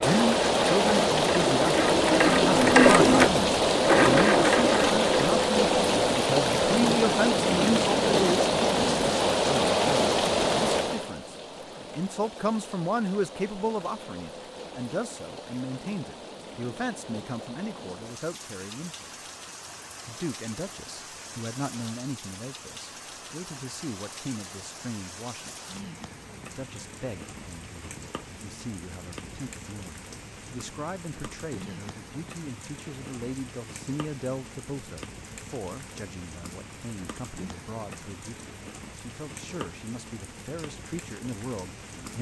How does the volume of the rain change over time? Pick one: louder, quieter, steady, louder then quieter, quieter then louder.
quieter.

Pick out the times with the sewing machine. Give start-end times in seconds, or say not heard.
0.0-5.4.